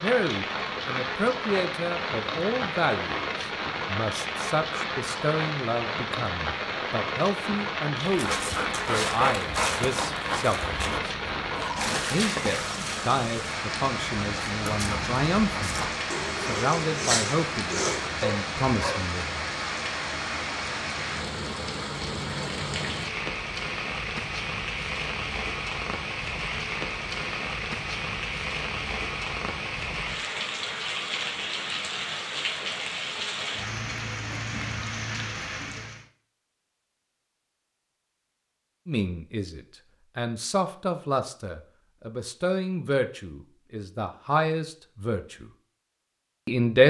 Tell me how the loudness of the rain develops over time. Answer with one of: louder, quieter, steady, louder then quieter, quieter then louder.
steady.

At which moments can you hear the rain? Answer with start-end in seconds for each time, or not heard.
0.0-36.0.